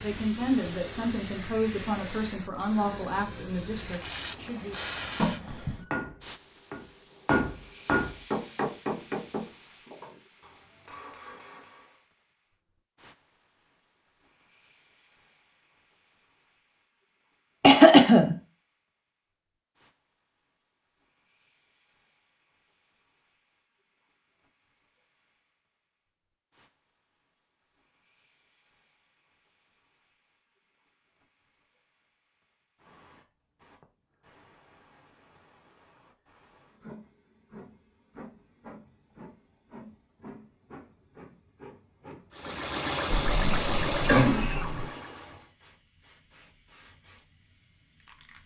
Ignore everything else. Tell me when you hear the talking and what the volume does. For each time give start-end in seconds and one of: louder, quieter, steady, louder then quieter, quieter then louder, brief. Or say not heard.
0.0-4.9 quieter.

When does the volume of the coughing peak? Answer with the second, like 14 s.
18 s.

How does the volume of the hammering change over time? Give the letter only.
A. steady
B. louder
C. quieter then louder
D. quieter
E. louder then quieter
D.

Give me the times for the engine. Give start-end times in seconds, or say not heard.
42.3-45.5.